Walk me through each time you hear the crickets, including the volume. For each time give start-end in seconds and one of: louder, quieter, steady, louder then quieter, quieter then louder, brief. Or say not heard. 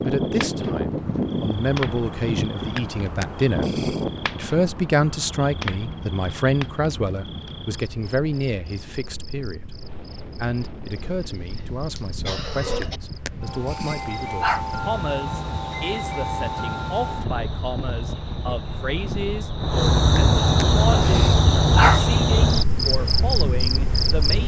0.0-24.4 quieter then louder.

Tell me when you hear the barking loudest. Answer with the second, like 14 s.
22 s.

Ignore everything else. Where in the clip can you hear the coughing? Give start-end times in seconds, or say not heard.
10.9-13.0.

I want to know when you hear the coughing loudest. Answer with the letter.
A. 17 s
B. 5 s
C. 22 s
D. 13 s
D.